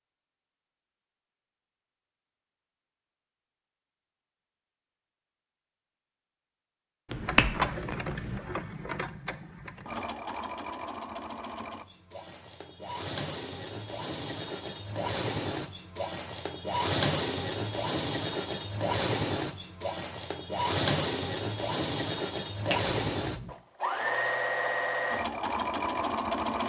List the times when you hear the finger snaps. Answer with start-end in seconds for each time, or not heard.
7.1-8.4, 22.6-23.5.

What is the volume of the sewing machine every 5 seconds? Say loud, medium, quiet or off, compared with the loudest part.
off, medium, medium, loud, loud, loud.